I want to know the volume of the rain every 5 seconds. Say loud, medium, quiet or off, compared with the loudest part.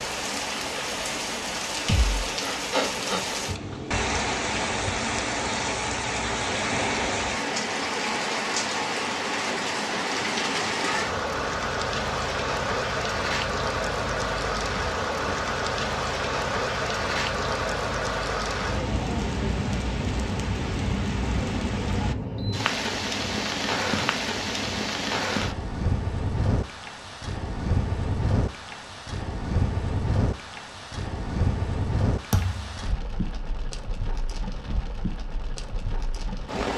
loud, loud, loud, loud, loud, loud, medium, medium.